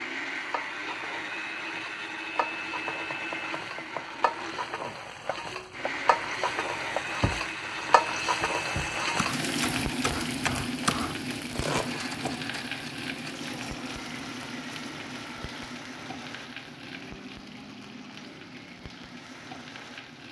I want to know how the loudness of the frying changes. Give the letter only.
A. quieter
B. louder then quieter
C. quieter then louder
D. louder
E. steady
B.